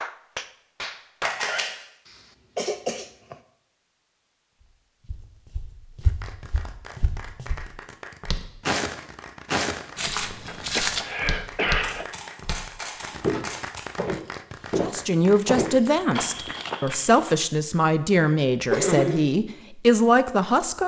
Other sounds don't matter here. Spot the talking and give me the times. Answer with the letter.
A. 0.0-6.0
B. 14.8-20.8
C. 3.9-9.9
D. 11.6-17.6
B.